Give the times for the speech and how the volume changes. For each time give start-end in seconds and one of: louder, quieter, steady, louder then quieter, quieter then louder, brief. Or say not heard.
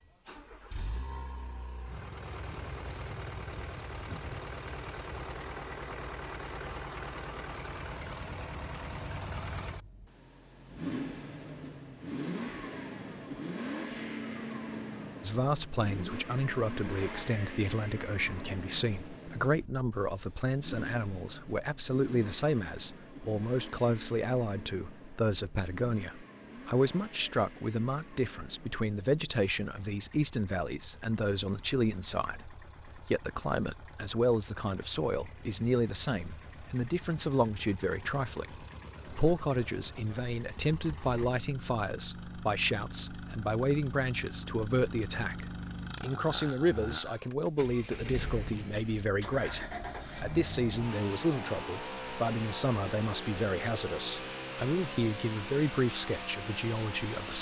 15.2-57.3 steady.